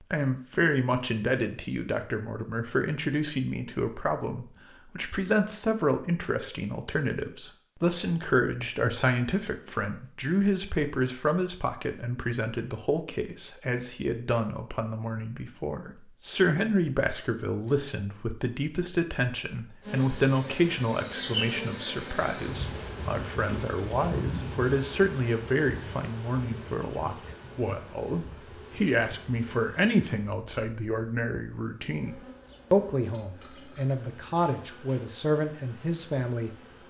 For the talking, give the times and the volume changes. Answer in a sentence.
The talking can be heard from 0.0 to 36.5 s, at a steady volume.